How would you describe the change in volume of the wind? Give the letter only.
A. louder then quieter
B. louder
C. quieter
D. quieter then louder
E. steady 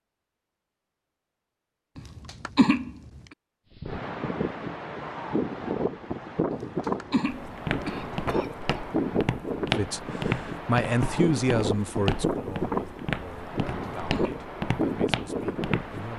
E.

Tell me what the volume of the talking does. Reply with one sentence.
The loudness of the talking goes down.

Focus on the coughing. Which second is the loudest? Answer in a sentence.
The loudest moment of the coughing is at 3 seconds.